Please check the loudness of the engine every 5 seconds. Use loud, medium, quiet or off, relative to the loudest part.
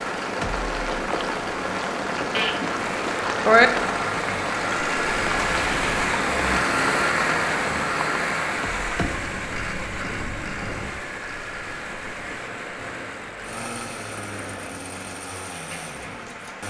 medium, loud, medium, quiet.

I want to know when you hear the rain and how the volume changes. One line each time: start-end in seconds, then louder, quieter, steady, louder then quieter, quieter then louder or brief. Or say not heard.
0.0-16.6 quieter.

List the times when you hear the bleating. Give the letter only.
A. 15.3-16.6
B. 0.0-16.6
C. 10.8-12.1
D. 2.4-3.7
D.